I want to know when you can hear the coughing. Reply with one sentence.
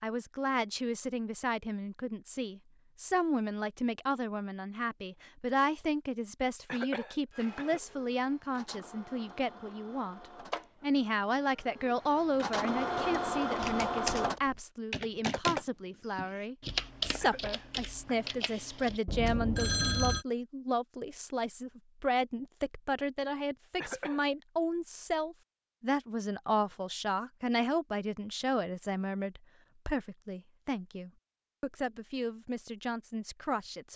The coughing can be heard from 6.7 to 7.8 s, from 17.2 to 18.3 s and from 23.8 to 24.3 s.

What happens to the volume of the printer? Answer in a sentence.
The volume of the printer goes up.